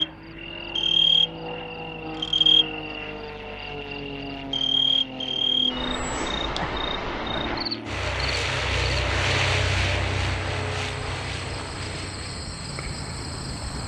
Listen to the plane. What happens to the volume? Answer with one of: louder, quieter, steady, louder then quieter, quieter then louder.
louder then quieter.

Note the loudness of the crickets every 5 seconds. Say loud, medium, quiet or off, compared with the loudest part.
loud, loud, quiet.